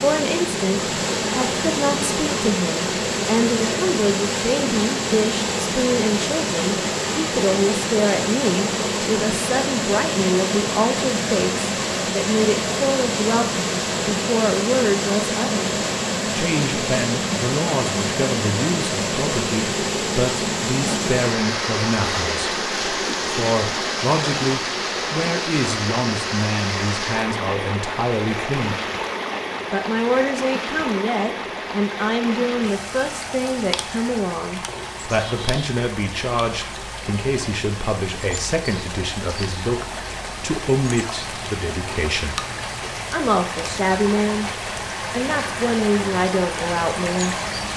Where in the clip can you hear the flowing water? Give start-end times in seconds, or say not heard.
0.0-47.7.